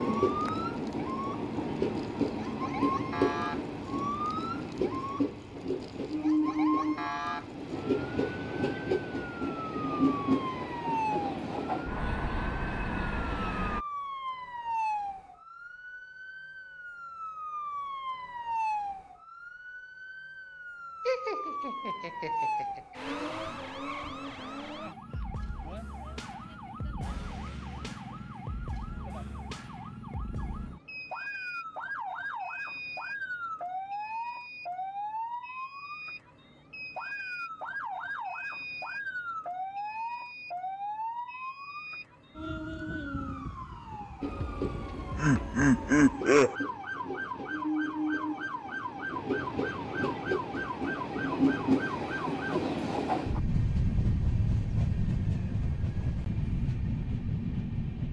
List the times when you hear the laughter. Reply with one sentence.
The laughter can be heard from 21.1 to 22.8 s and from 44.6 to 46.5 s.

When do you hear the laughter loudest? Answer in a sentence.
The volume of the laughter peaks at 46 seconds.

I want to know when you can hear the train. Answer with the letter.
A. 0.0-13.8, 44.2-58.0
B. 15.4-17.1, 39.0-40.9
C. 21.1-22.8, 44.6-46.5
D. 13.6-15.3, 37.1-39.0
A.